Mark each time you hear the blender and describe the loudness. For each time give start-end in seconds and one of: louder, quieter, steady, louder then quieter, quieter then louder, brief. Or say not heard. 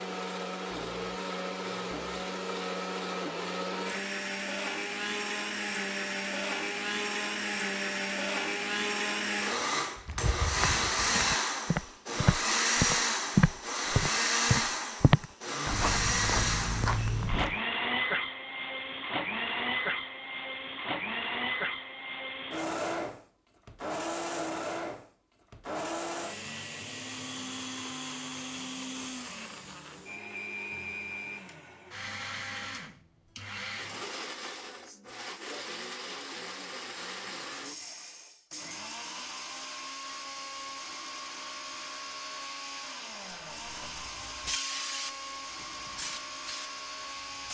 0.0-47.4 quieter.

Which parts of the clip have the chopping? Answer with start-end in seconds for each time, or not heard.
not heard.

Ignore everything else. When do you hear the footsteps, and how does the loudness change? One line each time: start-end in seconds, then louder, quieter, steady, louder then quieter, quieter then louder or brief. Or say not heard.
10.1-17.6 louder then quieter.